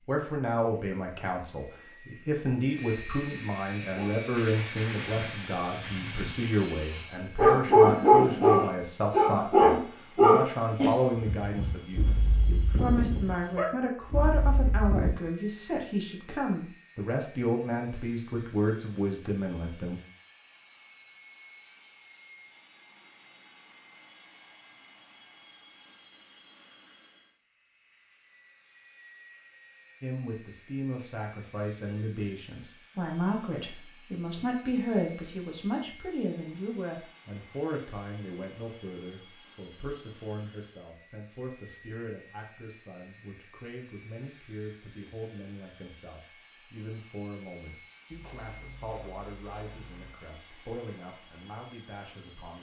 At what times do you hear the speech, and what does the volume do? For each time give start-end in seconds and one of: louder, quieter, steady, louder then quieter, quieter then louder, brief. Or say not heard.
0.1-20.0 steady
30.0-52.5 quieter.